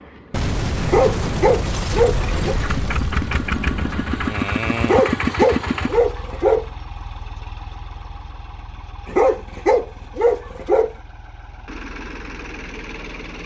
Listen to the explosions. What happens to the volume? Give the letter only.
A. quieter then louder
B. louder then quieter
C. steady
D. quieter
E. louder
D.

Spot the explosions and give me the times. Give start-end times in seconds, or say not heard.
0.3-4.3.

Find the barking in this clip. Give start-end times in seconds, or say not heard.
0.8-2.6, 4.8-6.7, 9.1-10.9.